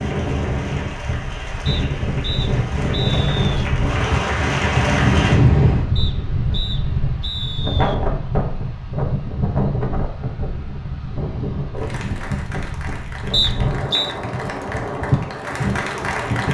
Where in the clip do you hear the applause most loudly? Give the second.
5 s.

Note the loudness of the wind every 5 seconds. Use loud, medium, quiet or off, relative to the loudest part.
loud, loud, medium, loud.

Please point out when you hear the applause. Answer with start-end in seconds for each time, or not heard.
0.0-5.4, 11.8-16.4.